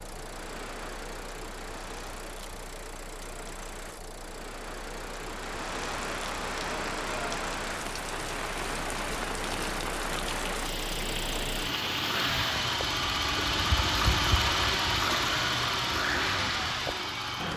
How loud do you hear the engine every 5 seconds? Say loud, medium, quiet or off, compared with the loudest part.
quiet, quiet, loud, loud.